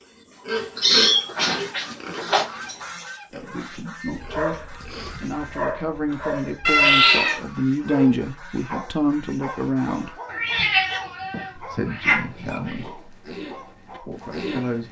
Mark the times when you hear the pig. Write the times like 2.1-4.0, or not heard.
0.0-5.2, 12.4-14.8.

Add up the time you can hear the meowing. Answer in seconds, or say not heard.
5 s.